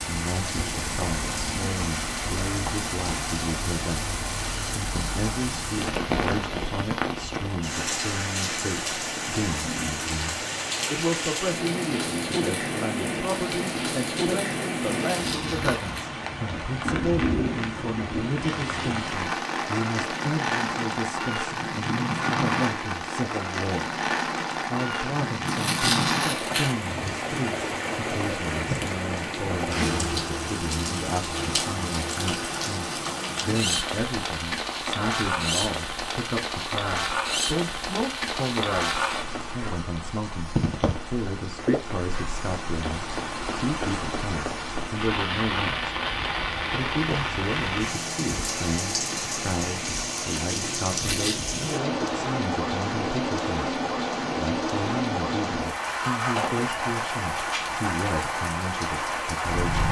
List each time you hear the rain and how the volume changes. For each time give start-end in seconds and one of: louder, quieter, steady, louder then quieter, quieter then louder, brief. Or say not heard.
0.0-59.8 steady.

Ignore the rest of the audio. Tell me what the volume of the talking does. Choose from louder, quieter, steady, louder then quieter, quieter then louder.
steady.